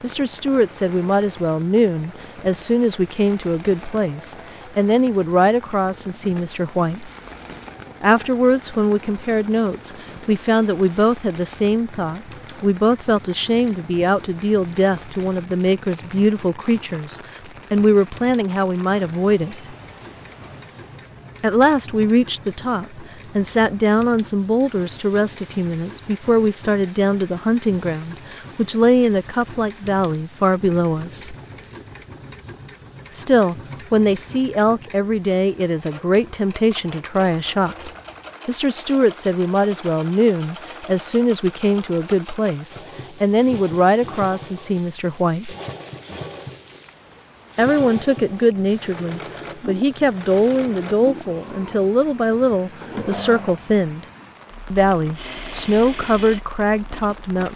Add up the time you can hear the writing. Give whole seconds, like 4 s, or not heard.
not heard.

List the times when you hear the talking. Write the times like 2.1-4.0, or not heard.
0.0-7.1, 8.0-19.8, 21.4-31.4, 33.1-45.5, 47.5-54.0, 54.7-57.5.